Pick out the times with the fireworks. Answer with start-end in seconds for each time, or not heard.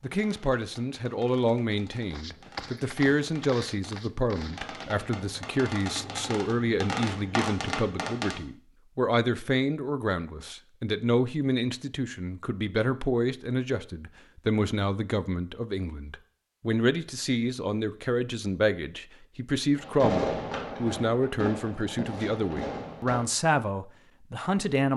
0.0-8.4, 19.8-23.2.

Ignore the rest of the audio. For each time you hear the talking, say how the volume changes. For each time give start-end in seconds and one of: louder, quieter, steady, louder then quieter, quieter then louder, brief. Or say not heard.
0.0-24.9 steady.